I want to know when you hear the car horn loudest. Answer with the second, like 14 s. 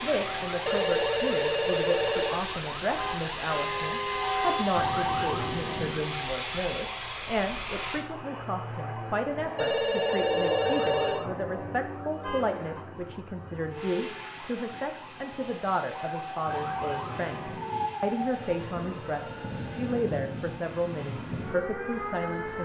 4 s.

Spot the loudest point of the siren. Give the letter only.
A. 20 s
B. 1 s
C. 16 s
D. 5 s
D.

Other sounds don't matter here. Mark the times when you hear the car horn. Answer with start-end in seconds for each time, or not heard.
3.0-4.7, 12.2-12.7.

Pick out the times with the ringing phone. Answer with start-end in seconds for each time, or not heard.
0.7-2.4, 9.6-11.3, 18.4-19.9.